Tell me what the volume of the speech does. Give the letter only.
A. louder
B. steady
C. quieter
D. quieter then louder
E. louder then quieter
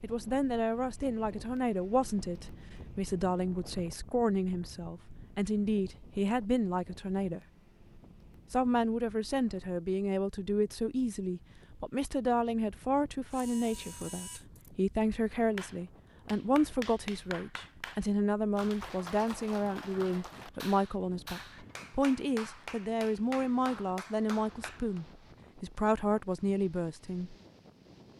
B.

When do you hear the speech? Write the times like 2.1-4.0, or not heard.
0.0-7.4, 8.5-27.4.